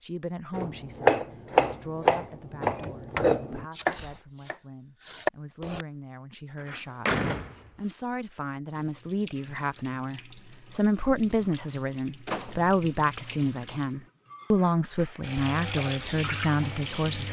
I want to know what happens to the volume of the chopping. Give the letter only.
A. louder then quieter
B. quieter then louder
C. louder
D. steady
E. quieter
E.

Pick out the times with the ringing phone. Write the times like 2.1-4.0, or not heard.
not heard.